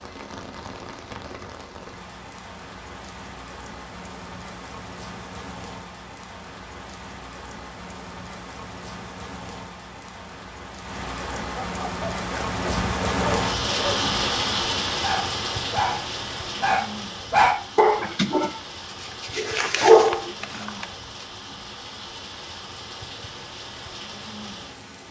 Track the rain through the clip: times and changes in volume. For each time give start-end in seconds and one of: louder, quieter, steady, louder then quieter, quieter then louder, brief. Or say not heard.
0.0-25.0 louder then quieter.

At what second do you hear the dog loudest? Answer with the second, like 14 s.
20 s.